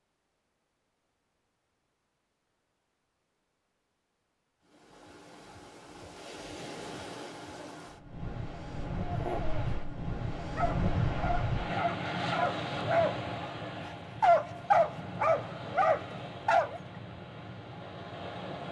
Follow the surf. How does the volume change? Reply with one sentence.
The loudness of the surf goes up, then down.